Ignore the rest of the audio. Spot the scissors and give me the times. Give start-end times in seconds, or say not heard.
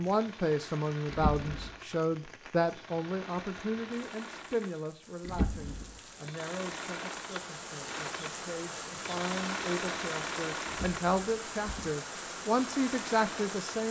not heard.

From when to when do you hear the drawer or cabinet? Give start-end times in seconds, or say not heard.
1.1-1.7, 5.2-5.9, 10.7-12.0.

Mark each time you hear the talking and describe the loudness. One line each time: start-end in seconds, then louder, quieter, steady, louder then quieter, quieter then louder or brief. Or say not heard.
0.0-13.8 quieter then louder.